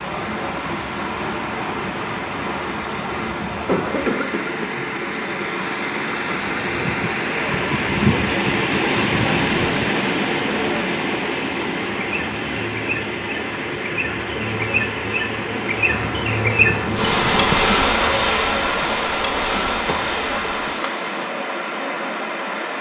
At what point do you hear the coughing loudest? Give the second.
4 s.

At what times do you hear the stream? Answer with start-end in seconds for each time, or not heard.
0.0-22.7.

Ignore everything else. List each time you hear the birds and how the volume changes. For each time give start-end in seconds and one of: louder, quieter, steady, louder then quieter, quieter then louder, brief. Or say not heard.
not heard.